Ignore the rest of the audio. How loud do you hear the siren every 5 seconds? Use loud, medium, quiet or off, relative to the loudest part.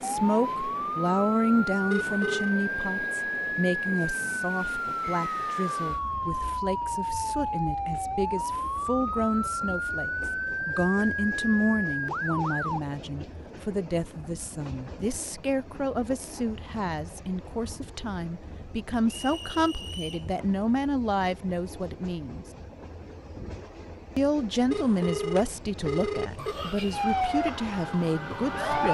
loud, loud, loud, off, off, loud.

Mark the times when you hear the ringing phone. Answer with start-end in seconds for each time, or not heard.
1.9-2.5, 24.7-26.6.